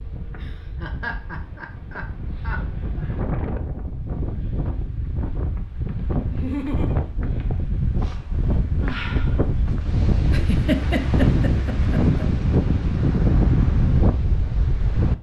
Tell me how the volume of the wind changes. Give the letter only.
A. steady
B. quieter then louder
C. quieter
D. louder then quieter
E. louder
E.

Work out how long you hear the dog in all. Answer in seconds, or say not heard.
not heard.